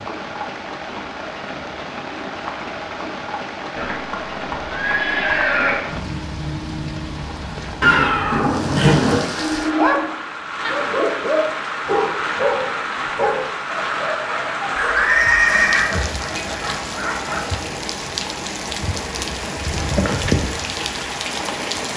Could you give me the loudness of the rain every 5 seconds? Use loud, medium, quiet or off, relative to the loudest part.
medium, medium, loud, loud, loud.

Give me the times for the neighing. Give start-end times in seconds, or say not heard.
3.8-5.8, 7.8-9.2, 14.8-15.8.